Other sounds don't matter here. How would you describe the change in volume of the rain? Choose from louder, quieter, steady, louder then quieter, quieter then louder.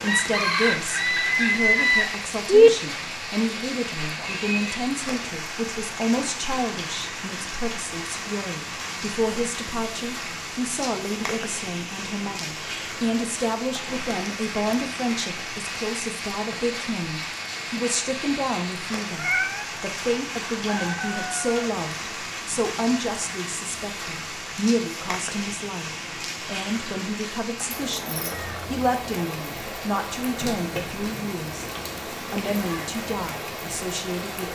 steady.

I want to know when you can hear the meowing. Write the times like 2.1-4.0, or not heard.
4.2-4.8, 19.1-19.6, 28.3-28.8.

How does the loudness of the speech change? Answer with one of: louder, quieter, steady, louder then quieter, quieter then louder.
steady.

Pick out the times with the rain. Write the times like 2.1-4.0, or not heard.
0.0-34.5.